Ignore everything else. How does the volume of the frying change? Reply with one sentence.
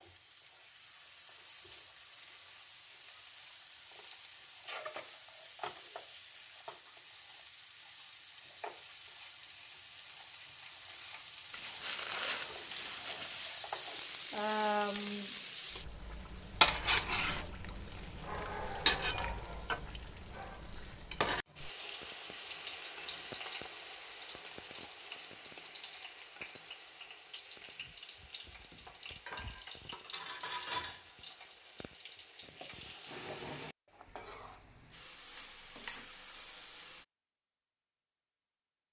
The volume of the frying goes up, then down.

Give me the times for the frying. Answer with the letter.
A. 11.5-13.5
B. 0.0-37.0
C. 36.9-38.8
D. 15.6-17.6
B.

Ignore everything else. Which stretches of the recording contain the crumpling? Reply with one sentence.
The crumpling can be heard from 11.5 to 13.5 s.